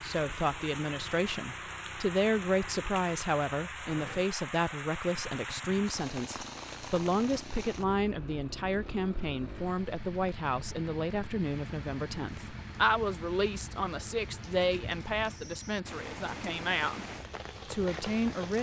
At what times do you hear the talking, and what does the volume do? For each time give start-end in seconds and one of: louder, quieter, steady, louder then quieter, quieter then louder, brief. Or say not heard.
0.0-17.1 steady
17.6-18.5 brief.